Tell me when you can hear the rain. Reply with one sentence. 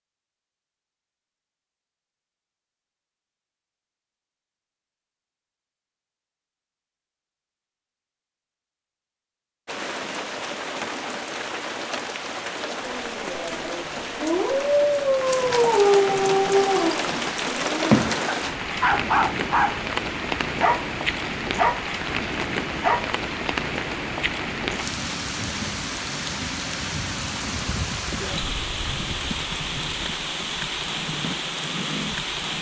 You can hear the rain from 9.7 to 32.5 s.